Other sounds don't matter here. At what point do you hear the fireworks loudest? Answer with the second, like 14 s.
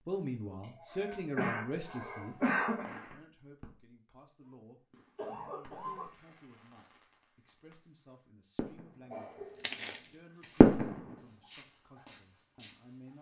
11 s.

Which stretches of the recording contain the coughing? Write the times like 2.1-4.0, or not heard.
0.6-2.9, 5.2-6.1, 9.1-10.3.